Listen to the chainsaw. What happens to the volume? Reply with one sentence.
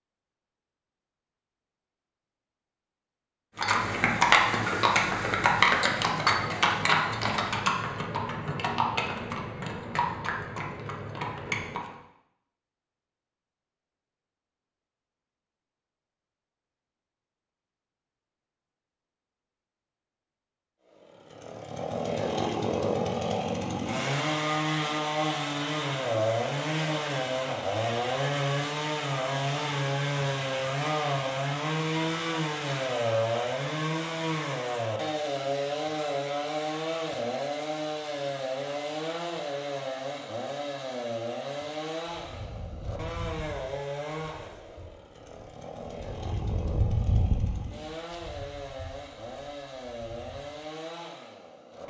The loudness of the chainsaw goes down.